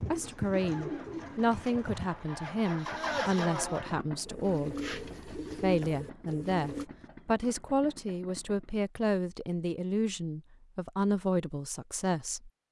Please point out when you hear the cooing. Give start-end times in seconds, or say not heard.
0.0-6.8.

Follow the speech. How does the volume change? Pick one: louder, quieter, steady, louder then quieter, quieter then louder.
steady.